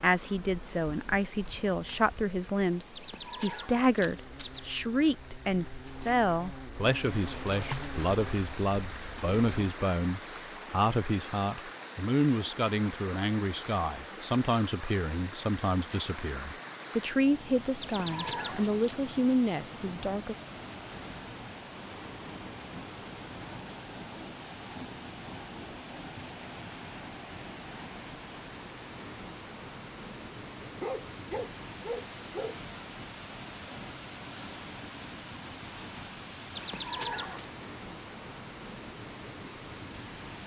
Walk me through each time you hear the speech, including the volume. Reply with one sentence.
The speech can be heard from 0.0 to 20.4 s, at a steady volume.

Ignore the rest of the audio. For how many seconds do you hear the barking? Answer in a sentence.
The barking can be heard for 2 seconds in total.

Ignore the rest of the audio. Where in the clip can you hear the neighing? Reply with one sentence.
The neighing can be heard from 3.0 to 4.8 s, from 17.8 to 18.9 s and from 36.5 to 37.5 s.